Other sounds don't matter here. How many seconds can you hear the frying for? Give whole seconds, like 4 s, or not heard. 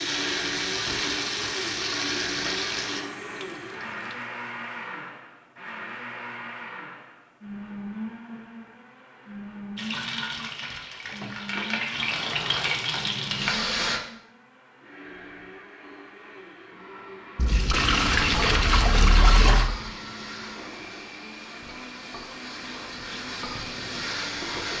14 s.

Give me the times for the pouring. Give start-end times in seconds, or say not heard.
3.0-4.2, 11.1-12.8, 17.4-19.7.